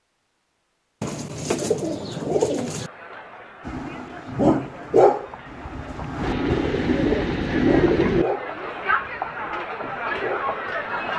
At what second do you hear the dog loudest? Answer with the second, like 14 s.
5 s.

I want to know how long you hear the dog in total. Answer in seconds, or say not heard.
7 s.